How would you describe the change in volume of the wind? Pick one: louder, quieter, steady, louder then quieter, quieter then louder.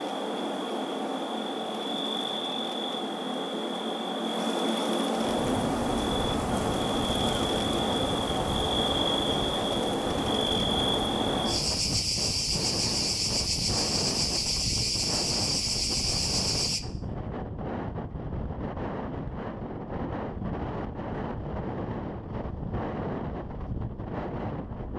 steady.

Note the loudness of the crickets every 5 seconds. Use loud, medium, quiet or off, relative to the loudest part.
loud, loud, loud, loud, off.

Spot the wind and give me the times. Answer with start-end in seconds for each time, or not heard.
5.2-24.9.